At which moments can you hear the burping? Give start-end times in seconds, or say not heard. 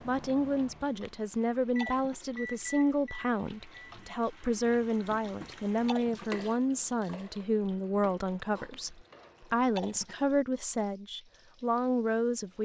not heard.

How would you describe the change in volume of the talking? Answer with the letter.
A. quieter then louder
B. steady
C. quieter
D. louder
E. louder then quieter
B.